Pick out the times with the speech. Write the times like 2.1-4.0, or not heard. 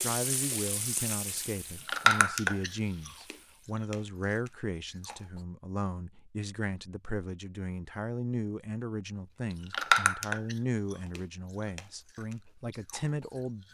0.0-13.6.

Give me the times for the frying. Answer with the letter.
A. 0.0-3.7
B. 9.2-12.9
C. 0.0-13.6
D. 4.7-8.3
A.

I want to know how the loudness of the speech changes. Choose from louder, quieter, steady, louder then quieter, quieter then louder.
steady.